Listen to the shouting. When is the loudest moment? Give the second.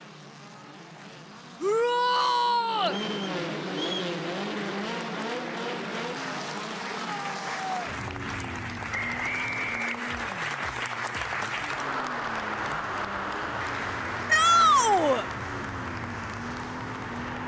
15 s.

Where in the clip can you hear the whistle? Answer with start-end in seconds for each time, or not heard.
2.9-4.0, 8.9-10.4.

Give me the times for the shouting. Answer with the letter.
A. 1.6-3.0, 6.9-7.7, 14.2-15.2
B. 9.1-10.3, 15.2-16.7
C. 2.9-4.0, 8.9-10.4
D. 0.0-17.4
A.